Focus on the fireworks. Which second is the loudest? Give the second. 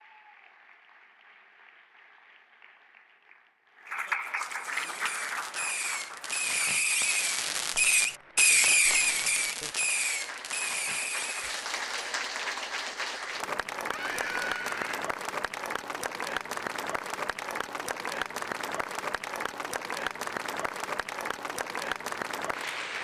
9 s.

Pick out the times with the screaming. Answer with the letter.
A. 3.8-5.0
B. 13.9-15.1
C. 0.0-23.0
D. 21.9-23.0
B.